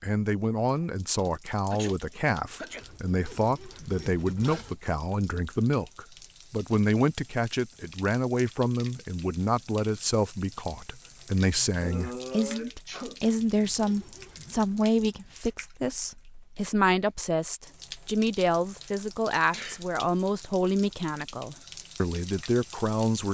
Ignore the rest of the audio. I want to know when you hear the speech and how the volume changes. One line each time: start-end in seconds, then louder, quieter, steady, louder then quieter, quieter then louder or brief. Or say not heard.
0.0-23.2 steady.